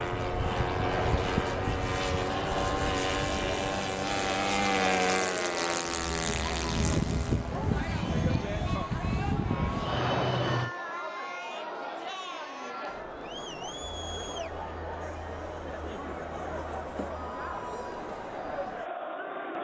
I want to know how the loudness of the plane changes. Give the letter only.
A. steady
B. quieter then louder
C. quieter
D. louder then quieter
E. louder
A.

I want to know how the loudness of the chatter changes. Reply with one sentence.
The volume of the chatter stays about the same.